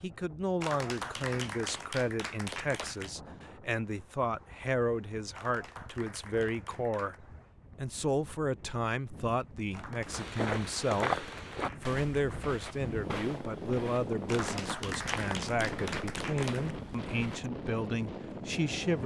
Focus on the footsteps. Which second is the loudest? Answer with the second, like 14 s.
11 s.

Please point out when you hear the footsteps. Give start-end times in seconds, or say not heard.
10.1-17.4.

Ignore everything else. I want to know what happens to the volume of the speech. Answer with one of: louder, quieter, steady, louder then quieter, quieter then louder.
steady.